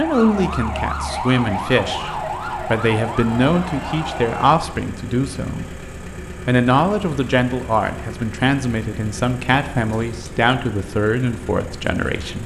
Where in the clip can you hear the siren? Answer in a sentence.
The siren can be heard from 0.0 to 4.5 s.